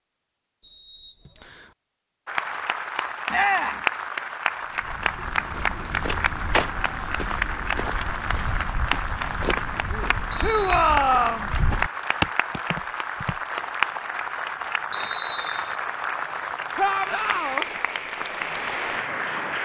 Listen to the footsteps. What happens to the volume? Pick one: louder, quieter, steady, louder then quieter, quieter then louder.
quieter then louder.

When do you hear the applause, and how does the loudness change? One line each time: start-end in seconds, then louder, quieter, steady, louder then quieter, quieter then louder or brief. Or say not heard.
2.2-19.6 steady.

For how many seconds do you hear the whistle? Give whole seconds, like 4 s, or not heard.
3 s.